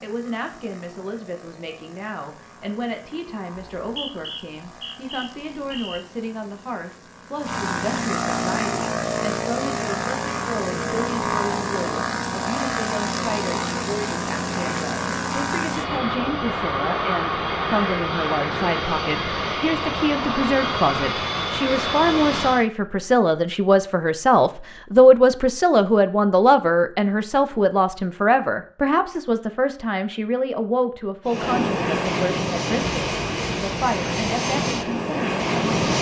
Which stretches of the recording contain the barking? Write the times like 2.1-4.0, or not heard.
not heard.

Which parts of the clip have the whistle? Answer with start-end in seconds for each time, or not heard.
3.8-6.0.